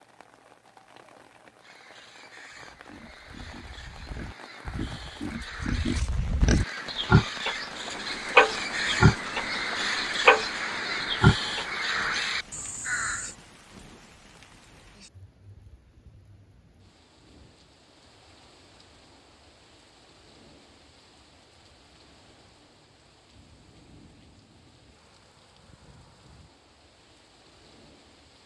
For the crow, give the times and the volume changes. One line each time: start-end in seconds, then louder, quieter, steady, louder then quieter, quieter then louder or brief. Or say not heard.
1.6-13.3 louder.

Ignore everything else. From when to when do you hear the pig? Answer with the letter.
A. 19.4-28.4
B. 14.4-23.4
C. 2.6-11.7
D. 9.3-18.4
C.